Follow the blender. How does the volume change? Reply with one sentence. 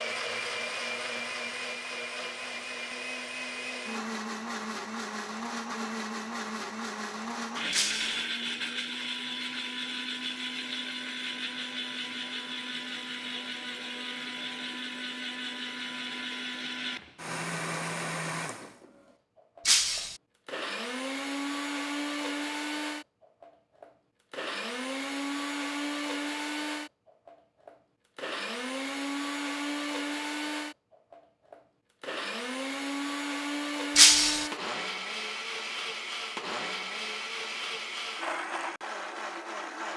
The volume of the blender stays about the same.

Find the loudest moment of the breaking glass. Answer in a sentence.
The loudest moment of the breaking glass is at 34 seconds.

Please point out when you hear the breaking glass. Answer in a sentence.
You can hear the breaking glass from 7.7 to 8.2 s, from 19.6 to 20.1 s and from 34.0 to 34.5 s.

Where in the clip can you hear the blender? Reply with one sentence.
You can hear the blender from 0.0 to 39.9 s.